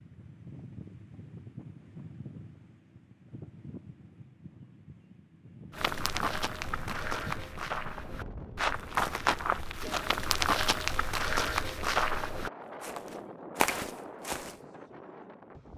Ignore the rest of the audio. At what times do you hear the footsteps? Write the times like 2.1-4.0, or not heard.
5.8-14.6.